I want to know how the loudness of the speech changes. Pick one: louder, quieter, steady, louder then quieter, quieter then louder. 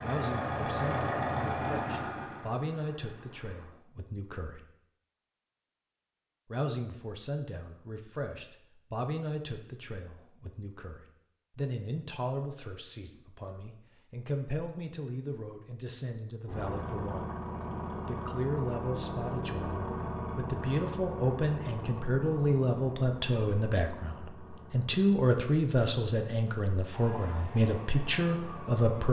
louder.